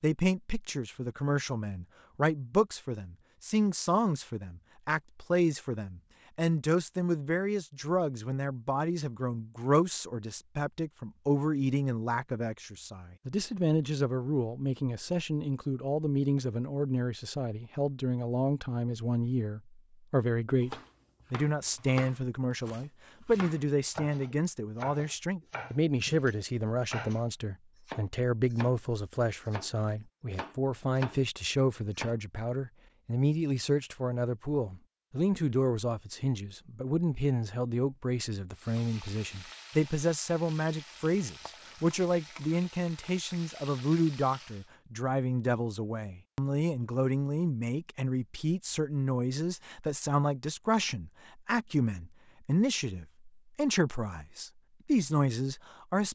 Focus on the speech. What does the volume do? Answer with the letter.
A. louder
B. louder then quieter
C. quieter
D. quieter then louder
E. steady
E.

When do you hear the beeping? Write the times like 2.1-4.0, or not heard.
not heard.